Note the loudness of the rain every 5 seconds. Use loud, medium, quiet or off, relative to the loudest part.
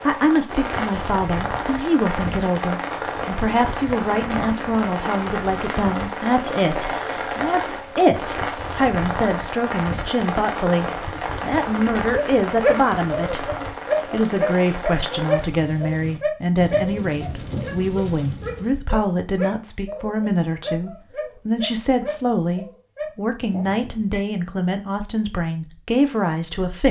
loud, loud, loud, medium, off, off.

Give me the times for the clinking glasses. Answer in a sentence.
The clinking glasses can be heard from 23.5 to 24.2 s.